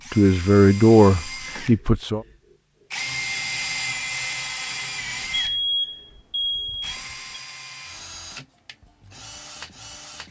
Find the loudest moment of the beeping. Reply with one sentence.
The loudest moment of the beeping is at 6 seconds.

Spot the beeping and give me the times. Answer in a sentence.
You can hear the beeping from 5.2 to 7.4 s.